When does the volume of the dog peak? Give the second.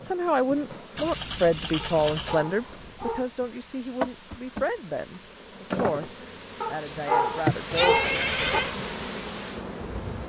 7 s.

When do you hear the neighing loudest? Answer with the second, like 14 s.
8 s.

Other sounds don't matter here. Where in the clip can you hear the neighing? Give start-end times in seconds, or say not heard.
0.9-2.4, 7.7-8.8.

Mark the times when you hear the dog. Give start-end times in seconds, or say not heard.
1.8-3.3, 6.6-8.6.